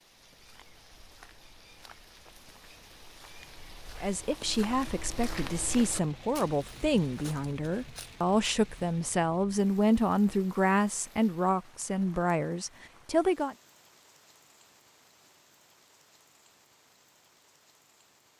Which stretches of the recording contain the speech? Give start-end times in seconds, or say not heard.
4.0-13.6.